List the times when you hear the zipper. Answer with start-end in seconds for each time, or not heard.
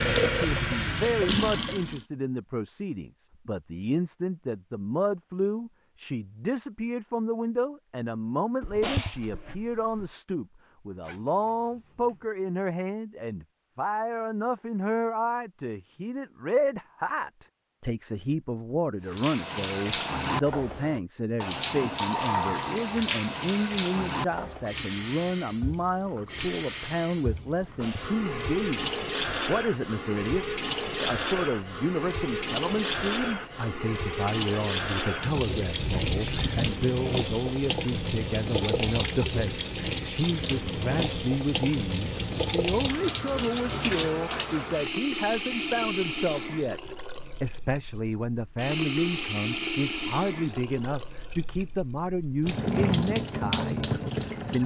11.0-12.2, 35.8-36.8.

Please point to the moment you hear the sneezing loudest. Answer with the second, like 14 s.
9 s.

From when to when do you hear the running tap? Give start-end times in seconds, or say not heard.
0.0-2.0, 19.1-54.6.